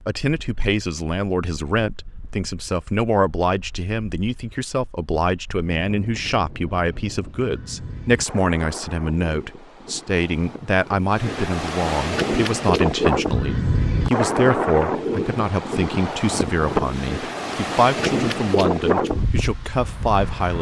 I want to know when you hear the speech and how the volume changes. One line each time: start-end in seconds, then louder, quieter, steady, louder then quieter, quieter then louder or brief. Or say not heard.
0.1-20.5 steady.